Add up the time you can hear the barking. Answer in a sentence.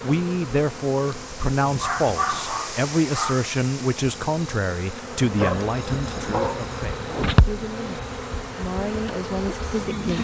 You can hear the barking for 3 seconds altogether.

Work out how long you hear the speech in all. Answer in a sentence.
You can hear the speech for 10 seconds altogether.